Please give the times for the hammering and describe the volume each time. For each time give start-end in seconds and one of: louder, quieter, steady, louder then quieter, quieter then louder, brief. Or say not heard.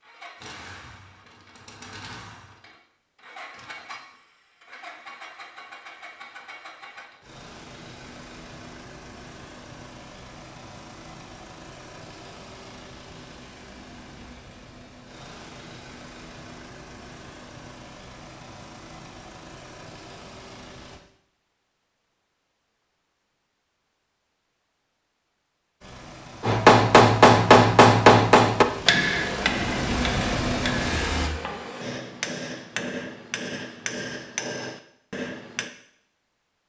26.4-35.7 quieter.